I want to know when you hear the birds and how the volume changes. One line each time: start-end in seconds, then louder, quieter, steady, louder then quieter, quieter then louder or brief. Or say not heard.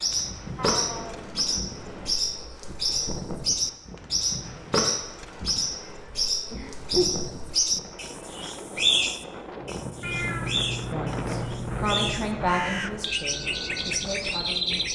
0.0-14.9 steady.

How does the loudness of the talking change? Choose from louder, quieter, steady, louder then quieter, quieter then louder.
quieter.